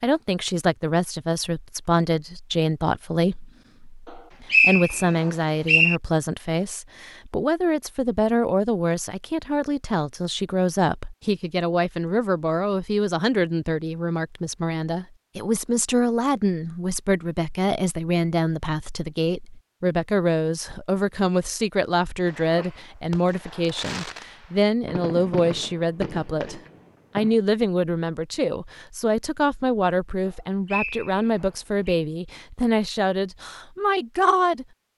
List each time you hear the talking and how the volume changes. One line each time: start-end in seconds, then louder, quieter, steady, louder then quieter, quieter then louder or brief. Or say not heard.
0.0-34.6 steady.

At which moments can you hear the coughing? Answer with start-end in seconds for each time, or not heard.
not heard.